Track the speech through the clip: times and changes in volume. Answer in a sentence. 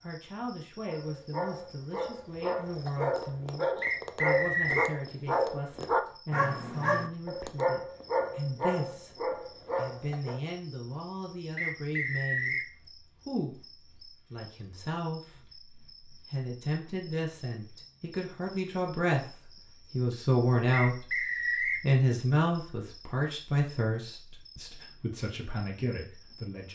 You can hear the speech from 0.0 to 26.7 s, getting louder.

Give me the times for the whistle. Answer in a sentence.
You can hear the whistle from 3.8 to 5.0 s, from 11.6 to 12.7 s and from 20.7 to 21.9 s.